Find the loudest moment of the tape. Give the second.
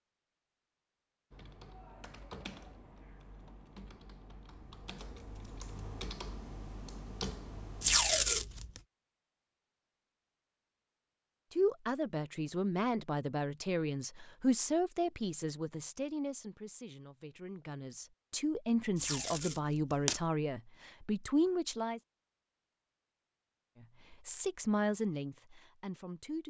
8 s.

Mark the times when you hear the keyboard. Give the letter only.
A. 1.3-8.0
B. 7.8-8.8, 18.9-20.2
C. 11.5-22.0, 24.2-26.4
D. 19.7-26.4
A.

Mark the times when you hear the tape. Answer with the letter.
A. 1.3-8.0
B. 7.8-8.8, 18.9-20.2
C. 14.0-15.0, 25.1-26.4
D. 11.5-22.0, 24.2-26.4
B.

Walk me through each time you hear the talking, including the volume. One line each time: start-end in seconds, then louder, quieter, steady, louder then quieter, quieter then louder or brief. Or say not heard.
11.5-22.0 quieter then louder
24.2-26.4 brief.